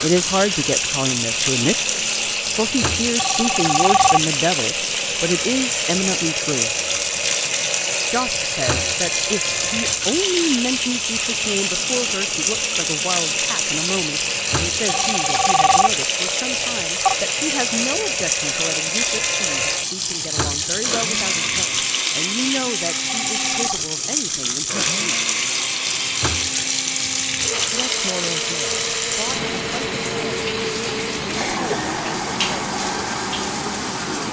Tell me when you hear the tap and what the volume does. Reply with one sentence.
The tap can be heard from 0.0 to 34.2 s, at a steady volume.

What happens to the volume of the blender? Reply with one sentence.
The loudness of the blender stays about the same.